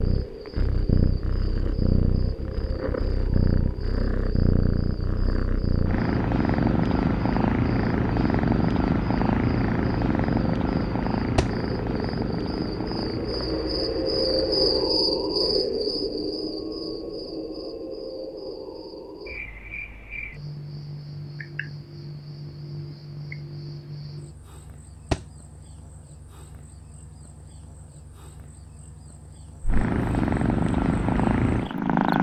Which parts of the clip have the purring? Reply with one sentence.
The purring can be heard from 0.0 to 14.9 s and from 29.6 to 32.1 s.